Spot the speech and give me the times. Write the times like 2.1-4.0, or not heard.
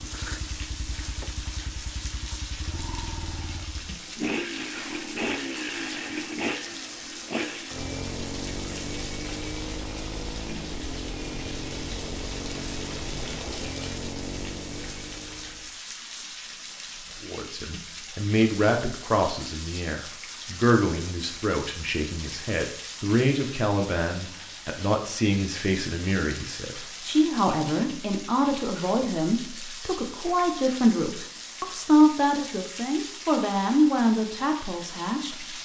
17.2-35.6.